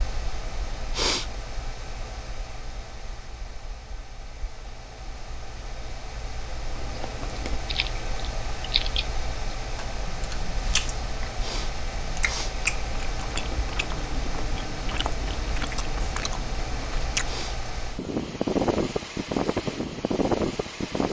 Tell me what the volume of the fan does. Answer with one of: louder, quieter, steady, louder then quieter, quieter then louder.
louder.